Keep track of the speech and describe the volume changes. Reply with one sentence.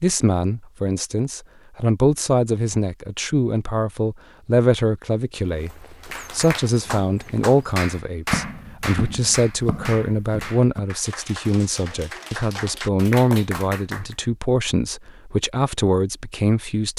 The volume of the speech stays about the same.